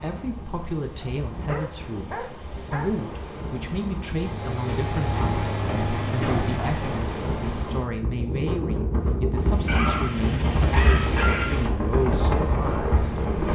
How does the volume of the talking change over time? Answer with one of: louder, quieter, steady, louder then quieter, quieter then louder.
steady.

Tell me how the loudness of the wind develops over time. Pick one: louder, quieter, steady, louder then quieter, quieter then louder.
louder.